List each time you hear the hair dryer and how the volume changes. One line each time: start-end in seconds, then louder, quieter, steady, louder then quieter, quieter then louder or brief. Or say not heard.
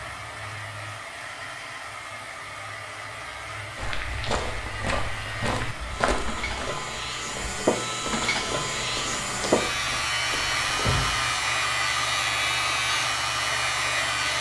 0.0-14.3 louder.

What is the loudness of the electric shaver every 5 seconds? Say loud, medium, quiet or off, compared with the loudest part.
quiet, loud, loud.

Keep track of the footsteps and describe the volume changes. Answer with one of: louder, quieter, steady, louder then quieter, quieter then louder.
quieter.